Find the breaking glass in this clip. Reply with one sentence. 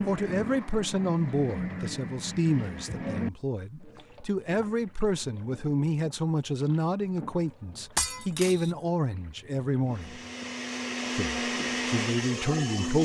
The breaking glass can be heard from 8.0 to 8.7 s.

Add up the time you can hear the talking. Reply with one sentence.
You can hear the talking for 12 seconds altogether.